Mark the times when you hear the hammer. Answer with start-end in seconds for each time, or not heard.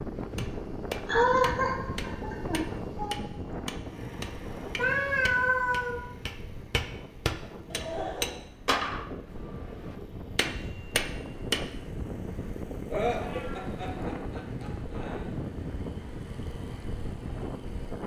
0.1-11.7.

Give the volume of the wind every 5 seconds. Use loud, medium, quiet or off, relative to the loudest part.
loud, medium, loud, loud.